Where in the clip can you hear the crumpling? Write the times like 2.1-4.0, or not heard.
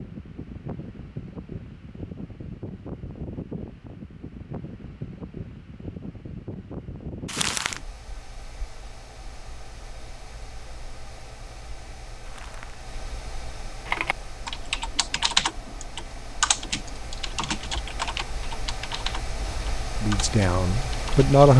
7.2-7.8, 12.2-12.8.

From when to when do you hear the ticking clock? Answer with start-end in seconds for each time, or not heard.
not heard.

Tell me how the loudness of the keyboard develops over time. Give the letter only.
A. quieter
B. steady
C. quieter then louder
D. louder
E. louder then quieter
A.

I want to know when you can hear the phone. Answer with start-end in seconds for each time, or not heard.
not heard.